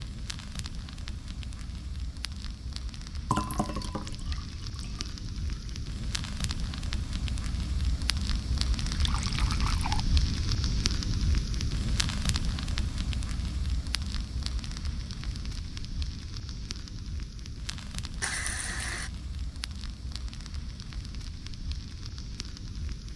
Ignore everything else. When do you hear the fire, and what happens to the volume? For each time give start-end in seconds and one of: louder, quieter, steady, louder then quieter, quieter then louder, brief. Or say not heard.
0.0-23.1 louder then quieter.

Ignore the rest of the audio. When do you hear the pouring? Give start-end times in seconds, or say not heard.
3.2-5.6, 8.8-10.0, 18.2-19.1.